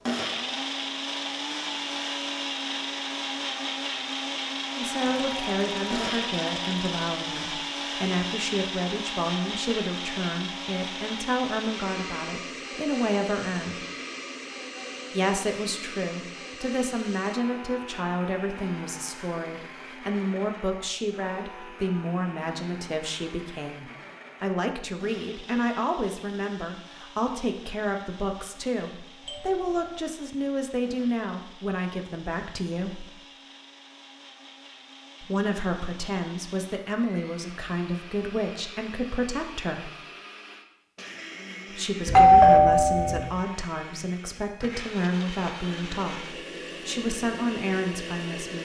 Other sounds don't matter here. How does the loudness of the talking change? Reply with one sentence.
The loudness of the talking stays about the same.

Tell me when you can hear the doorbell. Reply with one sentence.
You can hear the doorbell from 4.9 to 7.0 s, from 29.2 to 30.0 s and from 42.0 to 43.2 s.